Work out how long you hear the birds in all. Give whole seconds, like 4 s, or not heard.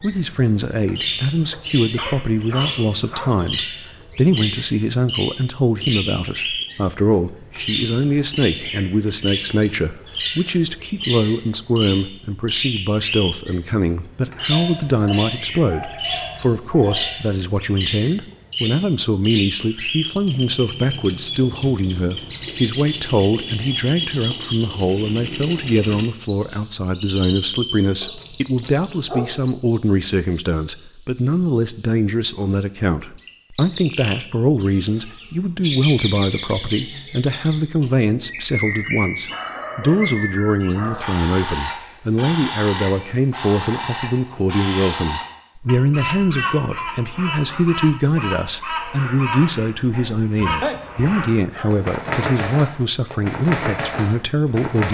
55 s.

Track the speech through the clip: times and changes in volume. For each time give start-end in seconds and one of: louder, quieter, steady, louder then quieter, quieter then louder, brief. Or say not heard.
0.0-54.8 steady.